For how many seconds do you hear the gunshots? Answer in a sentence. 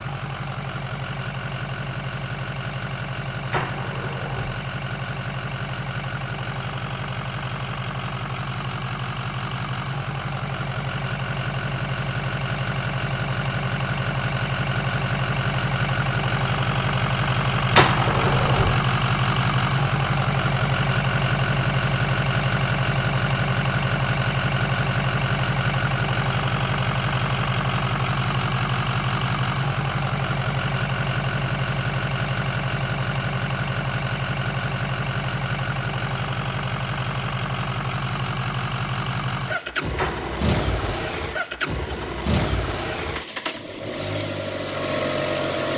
The gunshots can be heard for 3 seconds in total.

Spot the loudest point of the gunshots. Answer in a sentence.
The loudest moment of the gunshots is at 18 seconds.